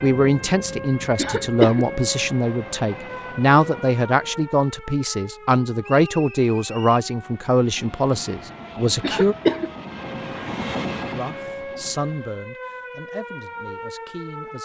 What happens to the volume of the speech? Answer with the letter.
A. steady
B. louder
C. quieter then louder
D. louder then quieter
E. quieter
E.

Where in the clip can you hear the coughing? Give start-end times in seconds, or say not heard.
1.1-1.9, 9.0-9.7.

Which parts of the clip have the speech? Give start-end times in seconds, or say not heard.
0.0-9.3, 11.0-14.6.